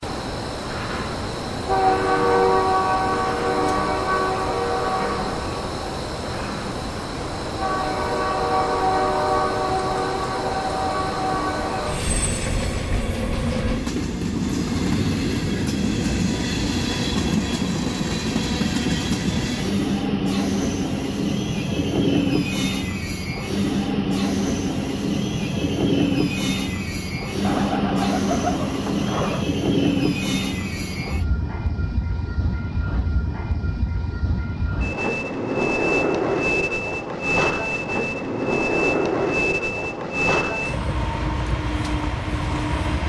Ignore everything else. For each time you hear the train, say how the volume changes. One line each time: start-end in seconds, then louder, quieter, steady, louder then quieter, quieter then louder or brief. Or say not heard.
0.0-43.0 steady.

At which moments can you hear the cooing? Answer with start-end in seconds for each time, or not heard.
27.4-29.4.